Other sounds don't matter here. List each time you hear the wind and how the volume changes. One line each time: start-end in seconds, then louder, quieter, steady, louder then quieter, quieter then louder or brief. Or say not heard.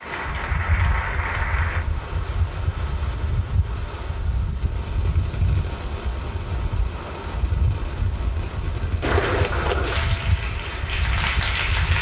0.0-11.9 steady.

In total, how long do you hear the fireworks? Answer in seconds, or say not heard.
5 s.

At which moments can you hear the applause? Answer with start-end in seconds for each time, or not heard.
0.0-1.9, 9.0-11.9.